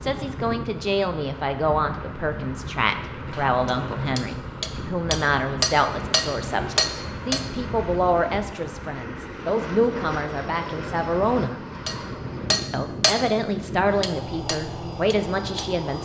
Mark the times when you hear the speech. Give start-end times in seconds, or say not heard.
0.0-11.6, 12.7-16.0.